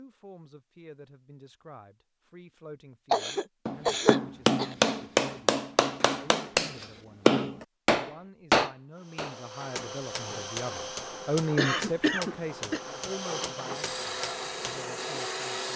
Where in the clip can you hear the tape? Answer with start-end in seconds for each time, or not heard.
not heard.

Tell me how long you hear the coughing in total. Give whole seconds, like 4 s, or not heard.
3 s.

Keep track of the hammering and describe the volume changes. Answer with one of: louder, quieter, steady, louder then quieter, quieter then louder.
quieter.